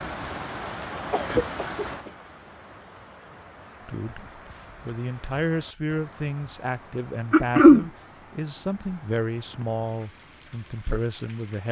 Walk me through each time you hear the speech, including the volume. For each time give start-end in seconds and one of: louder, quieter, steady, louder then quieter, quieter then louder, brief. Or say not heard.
3.9-11.6 steady.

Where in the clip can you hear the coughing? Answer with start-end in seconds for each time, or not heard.
1.1-2.1, 7.3-7.8.